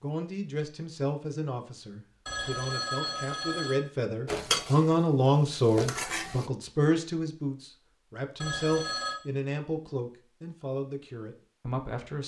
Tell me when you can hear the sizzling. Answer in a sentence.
The sizzling can be heard from 4.2 to 6.5 s.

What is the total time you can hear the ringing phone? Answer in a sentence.
You can hear the ringing phone for 2 seconds altogether.